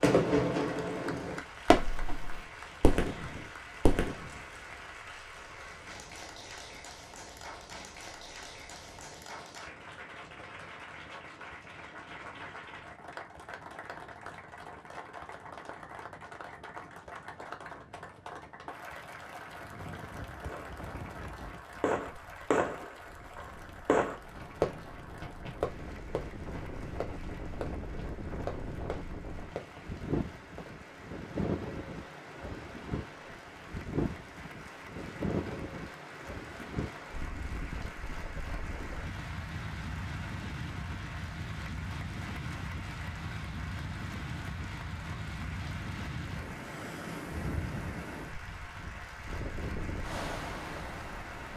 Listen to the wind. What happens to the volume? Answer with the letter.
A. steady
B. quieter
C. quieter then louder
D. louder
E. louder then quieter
D.